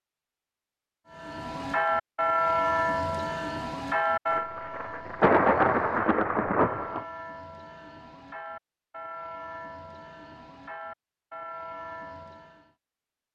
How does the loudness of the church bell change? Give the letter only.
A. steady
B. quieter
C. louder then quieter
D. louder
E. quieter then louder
B.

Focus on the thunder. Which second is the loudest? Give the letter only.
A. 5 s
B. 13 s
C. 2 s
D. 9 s
A.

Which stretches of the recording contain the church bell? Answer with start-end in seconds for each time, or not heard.
1.1-12.7.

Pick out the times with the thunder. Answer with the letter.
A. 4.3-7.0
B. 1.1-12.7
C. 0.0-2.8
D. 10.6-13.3
A.